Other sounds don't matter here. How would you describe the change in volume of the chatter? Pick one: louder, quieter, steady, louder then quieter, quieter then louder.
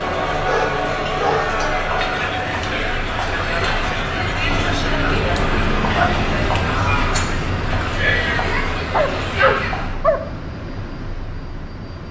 steady.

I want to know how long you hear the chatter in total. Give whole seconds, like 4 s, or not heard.
10 s.